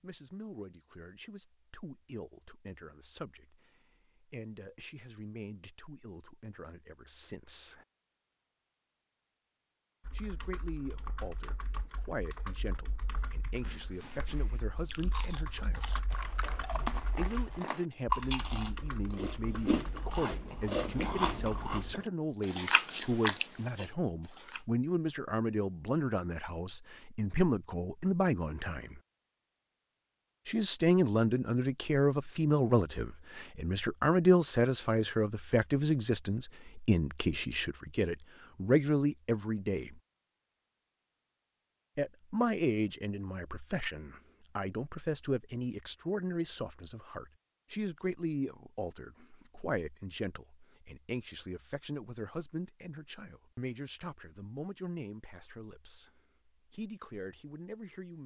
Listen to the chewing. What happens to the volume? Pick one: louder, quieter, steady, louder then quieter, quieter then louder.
louder.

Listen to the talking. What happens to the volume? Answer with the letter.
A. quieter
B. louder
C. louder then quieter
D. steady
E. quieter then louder
C.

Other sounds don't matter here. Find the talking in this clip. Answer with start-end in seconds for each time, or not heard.
0.0-7.8, 10.1-15.9, 17.1-29.0, 30.4-40.0, 42.0-58.2.